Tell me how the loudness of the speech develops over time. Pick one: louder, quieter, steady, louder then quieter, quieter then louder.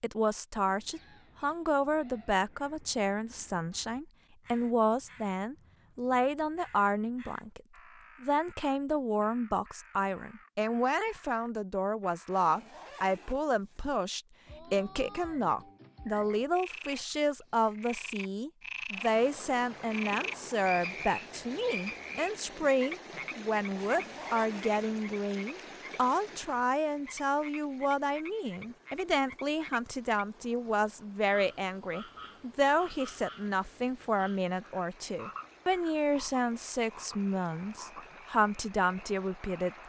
steady.